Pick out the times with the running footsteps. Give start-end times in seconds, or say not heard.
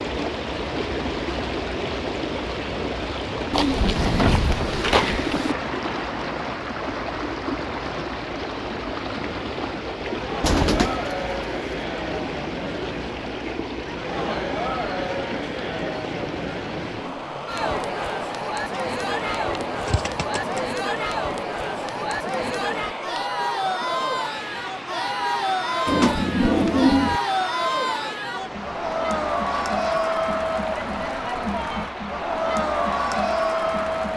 not heard.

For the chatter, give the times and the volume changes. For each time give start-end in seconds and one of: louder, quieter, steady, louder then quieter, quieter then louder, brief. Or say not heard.
9.1-34.1 louder.